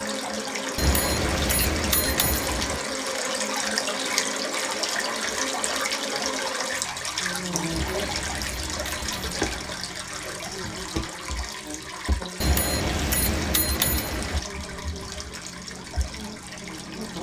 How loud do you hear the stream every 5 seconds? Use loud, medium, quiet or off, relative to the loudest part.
loud, loud, medium, medium.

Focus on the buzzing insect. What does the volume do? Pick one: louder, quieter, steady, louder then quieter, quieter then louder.
quieter.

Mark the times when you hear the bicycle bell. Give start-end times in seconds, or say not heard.
0.8-2.8, 7.7-9.7, 12.4-14.4.